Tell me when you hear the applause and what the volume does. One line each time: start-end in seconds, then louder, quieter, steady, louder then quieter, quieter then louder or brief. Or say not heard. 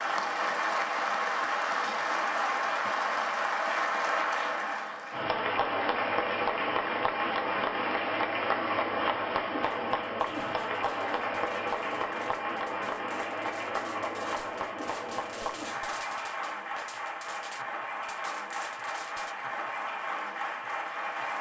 0.0-21.3 quieter.